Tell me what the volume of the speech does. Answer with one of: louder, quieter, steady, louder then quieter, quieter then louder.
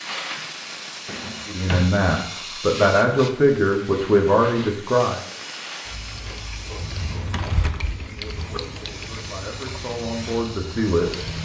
quieter then louder.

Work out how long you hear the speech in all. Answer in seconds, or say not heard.
7 s.